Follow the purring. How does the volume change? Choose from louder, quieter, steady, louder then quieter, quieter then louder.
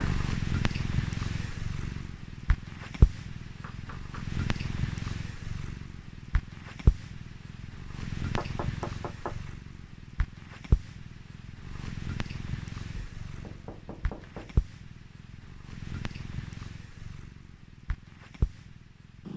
quieter.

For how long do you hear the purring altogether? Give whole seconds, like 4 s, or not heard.
19 s.